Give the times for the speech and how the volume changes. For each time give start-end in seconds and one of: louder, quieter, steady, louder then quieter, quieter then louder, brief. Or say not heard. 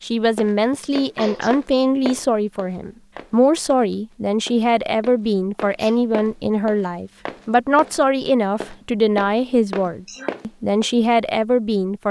0.0-12.0 steady.